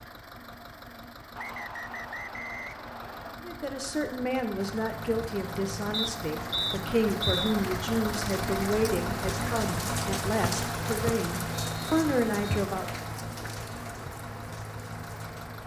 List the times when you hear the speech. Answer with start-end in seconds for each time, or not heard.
3.4-13.1.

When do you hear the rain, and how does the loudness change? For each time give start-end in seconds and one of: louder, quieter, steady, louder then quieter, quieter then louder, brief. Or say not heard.
4.5-15.6 louder then quieter.